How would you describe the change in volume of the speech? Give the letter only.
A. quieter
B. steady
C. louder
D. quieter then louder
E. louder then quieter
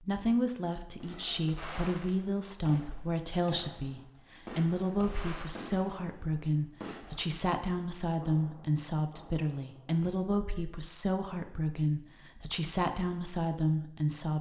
B.